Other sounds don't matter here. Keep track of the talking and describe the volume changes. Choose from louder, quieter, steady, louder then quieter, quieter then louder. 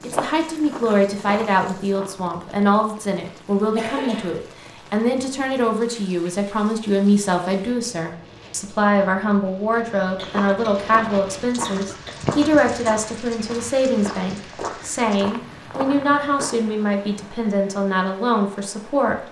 steady.